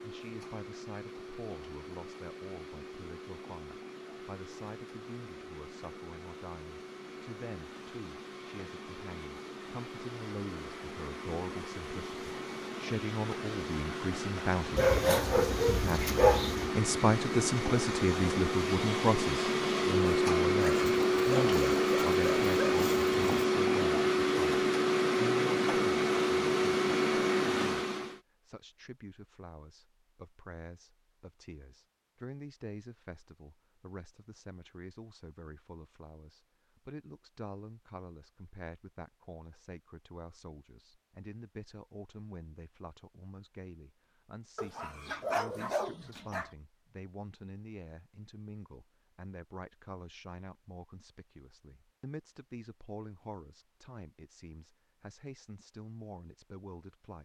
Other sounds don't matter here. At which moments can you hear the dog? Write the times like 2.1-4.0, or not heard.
14.8-16.7, 20.6-23.4, 44.5-46.5.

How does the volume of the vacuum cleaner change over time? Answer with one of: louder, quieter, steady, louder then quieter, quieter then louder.
louder.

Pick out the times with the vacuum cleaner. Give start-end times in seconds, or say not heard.
0.0-28.2.